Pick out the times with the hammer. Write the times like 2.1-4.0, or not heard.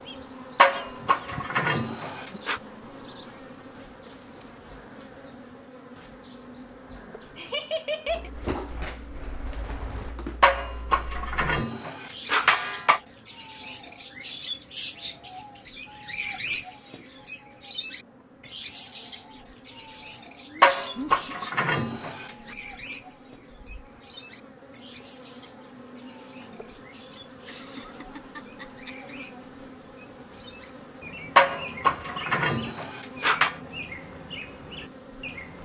0.6-2.6, 10.4-13.0, 20.6-22.3, 31.4-33.5.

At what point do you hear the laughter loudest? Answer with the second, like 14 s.
8 s.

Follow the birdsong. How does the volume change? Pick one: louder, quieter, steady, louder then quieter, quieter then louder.
louder then quieter.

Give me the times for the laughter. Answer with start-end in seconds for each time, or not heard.
7.3-8.3, 20.4-21.3, 27.4-28.9.